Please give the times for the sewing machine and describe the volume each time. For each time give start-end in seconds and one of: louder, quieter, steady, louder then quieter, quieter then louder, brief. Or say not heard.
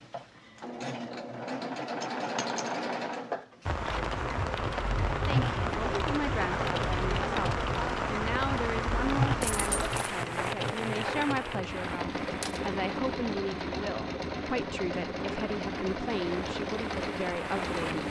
0.0-18.0 steady.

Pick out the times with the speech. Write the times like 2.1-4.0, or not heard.
5.0-18.0.